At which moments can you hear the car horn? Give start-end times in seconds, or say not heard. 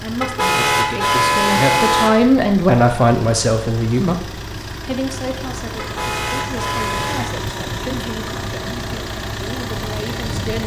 0.2-2.1, 5.8-7.3.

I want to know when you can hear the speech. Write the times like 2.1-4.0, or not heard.
0.0-10.6.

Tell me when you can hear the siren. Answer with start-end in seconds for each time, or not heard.
not heard.